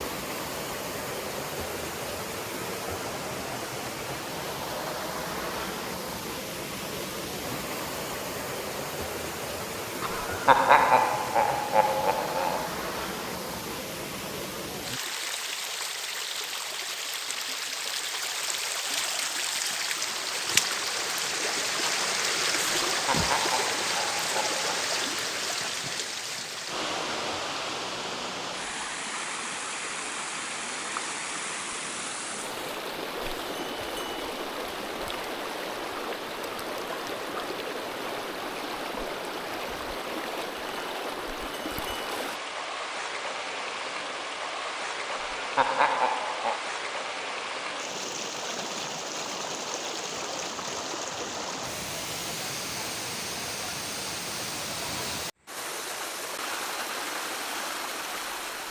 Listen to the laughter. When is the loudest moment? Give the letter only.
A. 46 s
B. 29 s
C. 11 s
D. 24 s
C.